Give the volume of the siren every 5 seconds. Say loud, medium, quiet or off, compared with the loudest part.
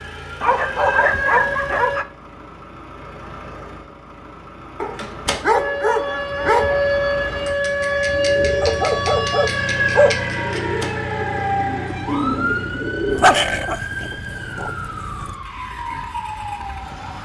loud, loud, medium, medium.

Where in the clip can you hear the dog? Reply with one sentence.
You can hear the dog from 0.4 to 2.0 s, from 4.8 to 6.8 s, from 8.6 to 10.2 s and from 13.1 to 15.3 s.